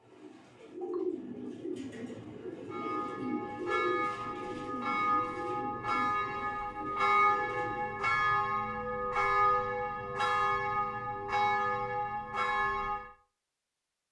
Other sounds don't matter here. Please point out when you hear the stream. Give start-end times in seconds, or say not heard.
not heard.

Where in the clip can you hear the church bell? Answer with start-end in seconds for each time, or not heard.
2.7-13.1.